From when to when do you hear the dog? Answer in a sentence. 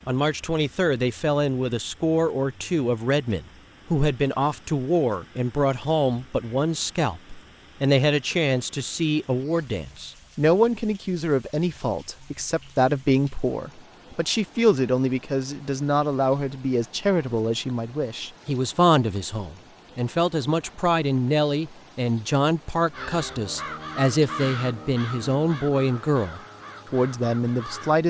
The dog can't be heard in this clip.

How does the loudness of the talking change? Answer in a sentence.
The loudness of the talking stays about the same.